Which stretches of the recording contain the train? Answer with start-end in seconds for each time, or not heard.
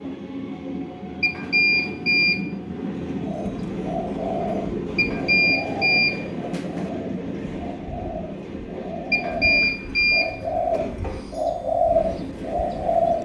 0.0-13.2.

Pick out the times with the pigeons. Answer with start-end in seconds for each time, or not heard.
3.2-13.2.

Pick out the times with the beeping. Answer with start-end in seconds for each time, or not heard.
1.2-2.4, 5.0-6.9, 9.1-10.3.